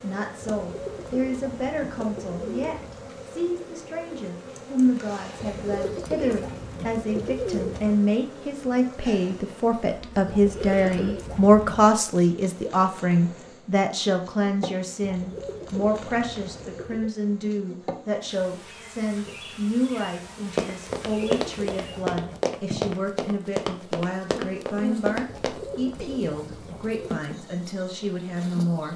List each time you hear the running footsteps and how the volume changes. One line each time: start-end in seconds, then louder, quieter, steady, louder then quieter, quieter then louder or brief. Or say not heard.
20.6-25.6 steady.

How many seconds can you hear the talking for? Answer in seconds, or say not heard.
29 s.